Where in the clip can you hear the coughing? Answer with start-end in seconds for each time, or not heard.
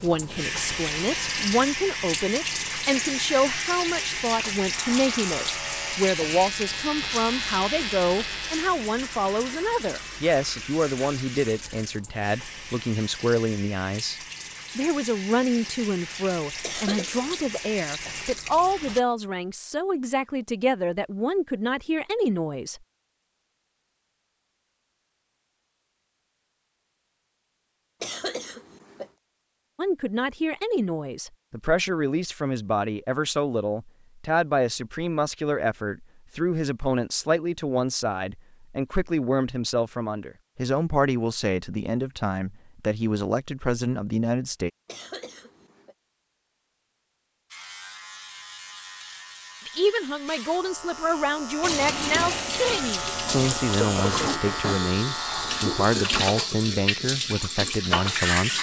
16.6-17.4, 28.0-29.1, 44.9-46.0.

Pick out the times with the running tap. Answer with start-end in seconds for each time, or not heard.
0.0-19.0, 51.6-58.5.